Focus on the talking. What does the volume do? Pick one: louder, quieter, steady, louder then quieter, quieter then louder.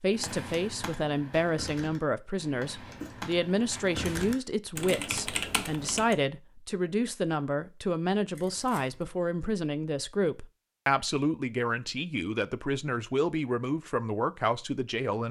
steady.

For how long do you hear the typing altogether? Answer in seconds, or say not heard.
6 s.